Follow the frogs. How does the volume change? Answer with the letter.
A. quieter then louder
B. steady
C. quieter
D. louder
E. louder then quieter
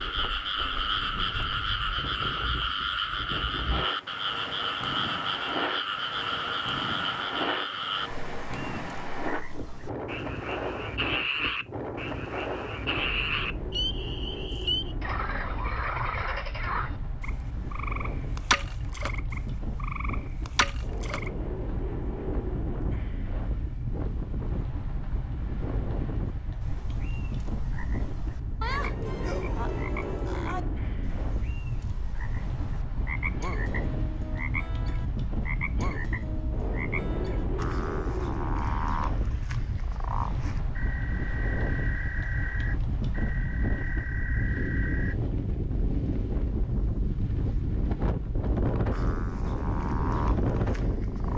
C.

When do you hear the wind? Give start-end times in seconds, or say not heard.
0.0-51.3.